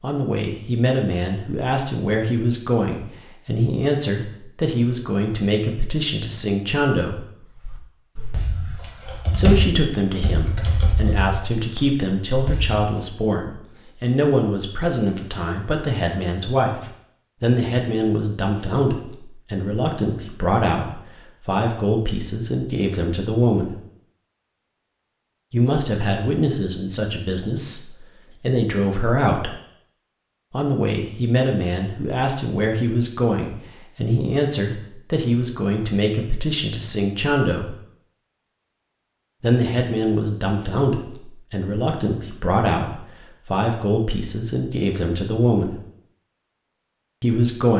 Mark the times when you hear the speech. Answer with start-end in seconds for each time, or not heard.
0.0-7.2, 9.3-23.8, 25.5-29.6, 30.5-37.8, 39.4-45.8, 47.2-47.7.